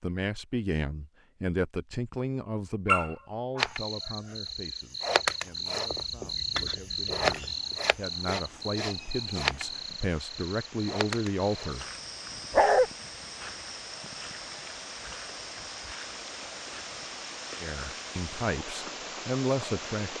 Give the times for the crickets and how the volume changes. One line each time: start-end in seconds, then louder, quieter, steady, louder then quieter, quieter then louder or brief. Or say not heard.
3.5-20.1 quieter.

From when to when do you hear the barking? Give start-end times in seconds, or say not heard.
2.9-3.7, 12.5-12.9.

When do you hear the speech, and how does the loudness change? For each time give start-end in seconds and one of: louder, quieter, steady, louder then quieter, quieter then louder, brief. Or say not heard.
0.0-11.8 quieter then louder
17.6-20.1 brief.